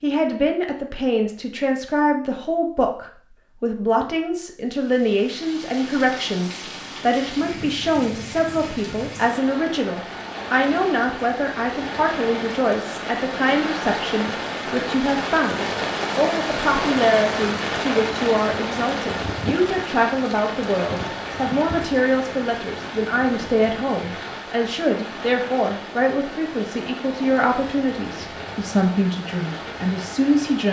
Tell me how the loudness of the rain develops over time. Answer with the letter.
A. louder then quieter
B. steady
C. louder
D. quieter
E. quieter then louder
A.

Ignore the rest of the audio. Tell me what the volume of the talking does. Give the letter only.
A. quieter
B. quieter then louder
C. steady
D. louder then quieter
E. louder
C.